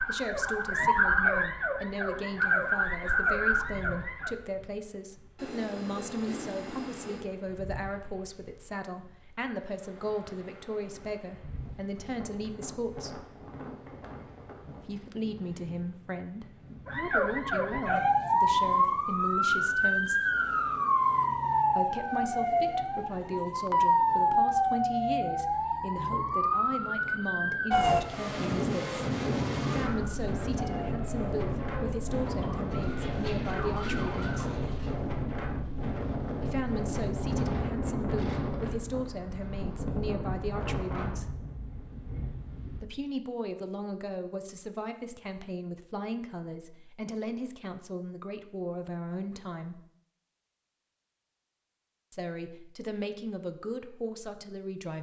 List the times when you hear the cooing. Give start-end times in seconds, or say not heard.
5.3-7.2, 32.6-35.0.